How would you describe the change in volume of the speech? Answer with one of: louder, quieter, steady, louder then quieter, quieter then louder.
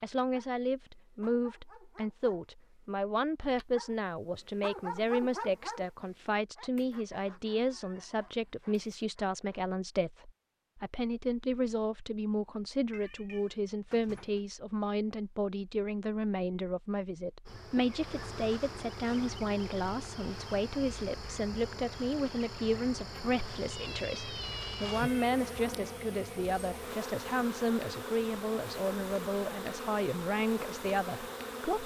steady.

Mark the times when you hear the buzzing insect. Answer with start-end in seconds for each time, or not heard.
17.4-31.8.